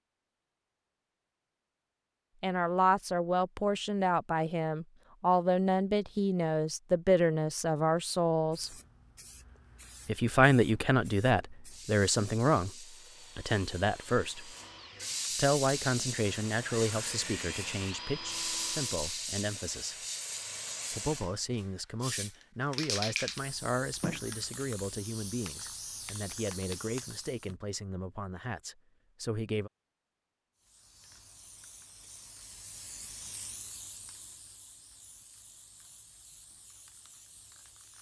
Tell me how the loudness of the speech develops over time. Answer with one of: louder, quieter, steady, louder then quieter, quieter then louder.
quieter.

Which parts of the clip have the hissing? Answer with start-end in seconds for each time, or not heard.
8.3-27.6, 30.6-37.9.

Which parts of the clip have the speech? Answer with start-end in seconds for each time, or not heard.
2.4-8.7, 10.1-14.6, 15.3-19.9, 20.9-29.7.